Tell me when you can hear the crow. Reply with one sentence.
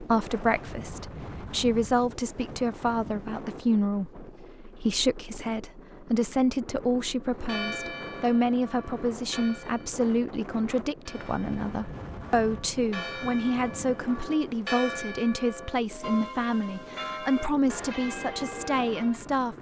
The crow can't be heard in this clip.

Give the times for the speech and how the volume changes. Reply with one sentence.
You can hear the speech from 0.0 to 19.5 s, at a steady volume.